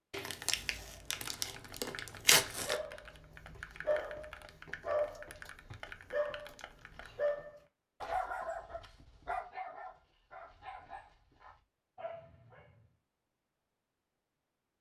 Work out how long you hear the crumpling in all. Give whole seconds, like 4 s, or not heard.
3 s.